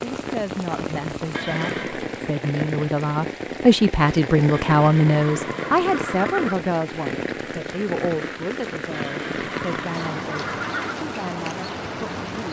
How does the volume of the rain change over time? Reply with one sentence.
The volume of the rain stays about the same.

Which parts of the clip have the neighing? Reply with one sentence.
The neighing can be heard from 1.3 to 2.0 s, from 4.7 to 6.5 s and from 8.9 to 10.9 s.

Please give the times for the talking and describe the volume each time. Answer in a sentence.
The talking can be heard from 0.0 to 12.4 s, getting louder then quieter.